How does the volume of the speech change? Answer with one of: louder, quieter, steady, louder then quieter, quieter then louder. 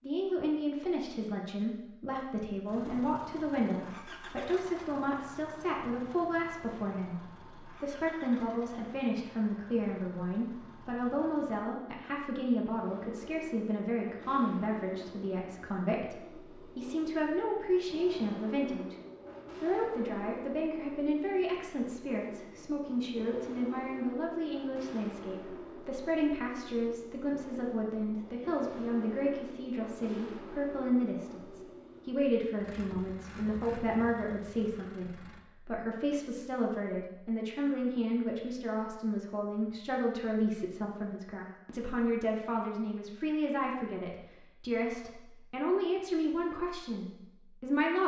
steady.